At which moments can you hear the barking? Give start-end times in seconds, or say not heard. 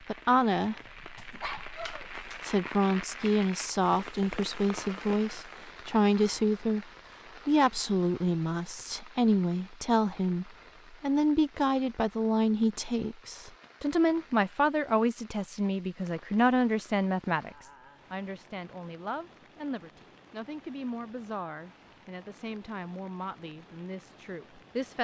1.1-2.5.